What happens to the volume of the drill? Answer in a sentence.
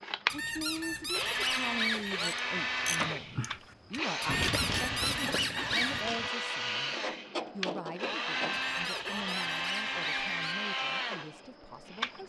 The volume of the drill stays about the same.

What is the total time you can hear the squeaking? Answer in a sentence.
You can hear the squeaking for 6 seconds altogether.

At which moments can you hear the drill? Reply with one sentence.
The drill can be heard from 0.0 to 12.2 s.